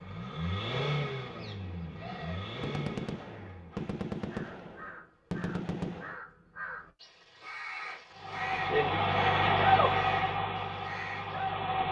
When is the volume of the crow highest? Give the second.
10 s.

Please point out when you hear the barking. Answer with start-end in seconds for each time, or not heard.
not heard.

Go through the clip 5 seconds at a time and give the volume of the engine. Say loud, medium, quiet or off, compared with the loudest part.
medium, loud, medium.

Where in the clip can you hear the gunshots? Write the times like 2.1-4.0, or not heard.
2.6-6.2.